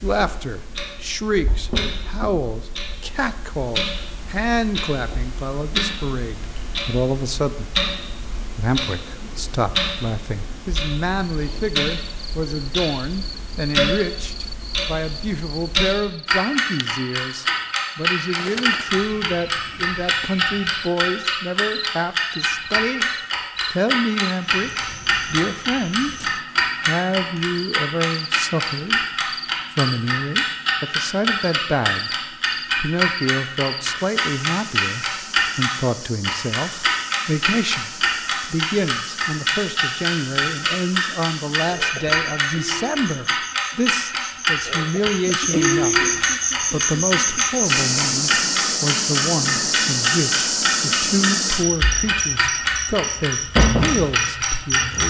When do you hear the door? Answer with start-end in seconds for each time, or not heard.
not heard.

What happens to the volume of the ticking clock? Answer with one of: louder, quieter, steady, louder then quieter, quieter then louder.
louder.